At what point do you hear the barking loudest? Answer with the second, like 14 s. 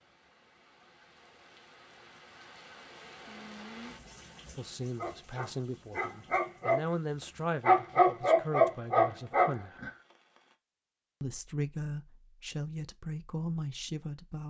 8 s.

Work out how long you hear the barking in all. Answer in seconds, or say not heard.
5 s.